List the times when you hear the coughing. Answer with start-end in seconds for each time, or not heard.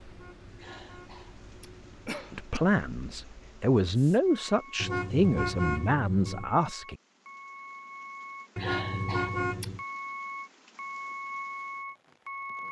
0.6-2.6, 8.6-9.7.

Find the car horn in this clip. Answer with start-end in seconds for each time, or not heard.
0.1-2.1, 4.8-6.5, 8.6-9.8.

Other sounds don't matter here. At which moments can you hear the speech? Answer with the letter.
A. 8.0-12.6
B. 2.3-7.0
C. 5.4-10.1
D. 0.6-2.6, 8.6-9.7
B.